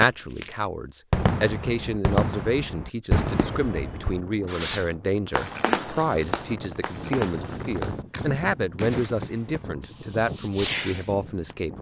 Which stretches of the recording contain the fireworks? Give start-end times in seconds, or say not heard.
0.0-0.5, 1.1-11.6.